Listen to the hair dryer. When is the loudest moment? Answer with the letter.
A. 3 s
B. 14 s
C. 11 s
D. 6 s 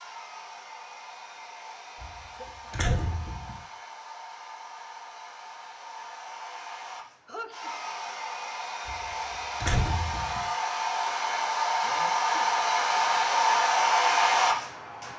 B.